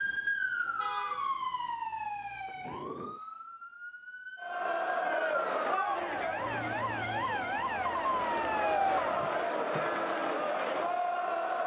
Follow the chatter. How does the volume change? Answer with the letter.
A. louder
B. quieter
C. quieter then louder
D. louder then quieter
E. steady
C.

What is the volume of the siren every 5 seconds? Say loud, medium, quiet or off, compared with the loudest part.
loud, loud, off.